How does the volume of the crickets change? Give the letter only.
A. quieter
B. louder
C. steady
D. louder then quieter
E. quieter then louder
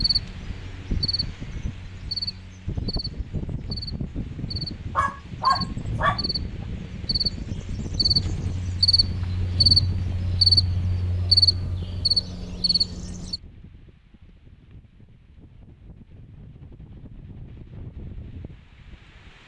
B.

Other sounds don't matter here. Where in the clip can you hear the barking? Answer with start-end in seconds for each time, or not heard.
5.0-6.2.